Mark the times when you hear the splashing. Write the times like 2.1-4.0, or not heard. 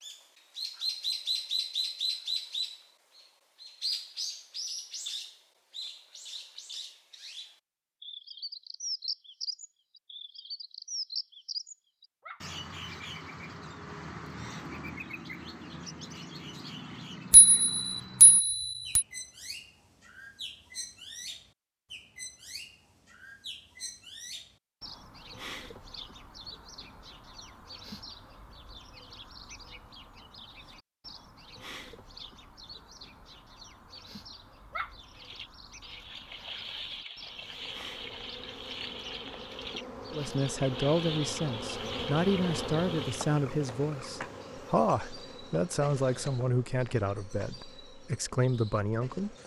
35.0-43.4.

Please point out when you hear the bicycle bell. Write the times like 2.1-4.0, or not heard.
17.3-19.1.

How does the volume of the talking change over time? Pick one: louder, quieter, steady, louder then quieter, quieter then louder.
steady.